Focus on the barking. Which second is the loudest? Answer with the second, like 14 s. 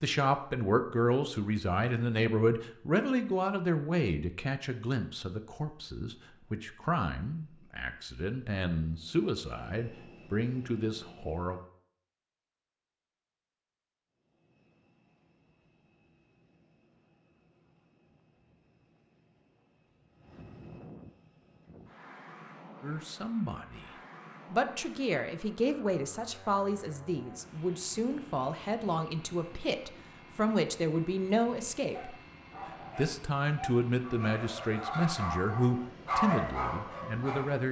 36 s.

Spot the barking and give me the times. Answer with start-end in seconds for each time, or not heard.
31.9-37.5.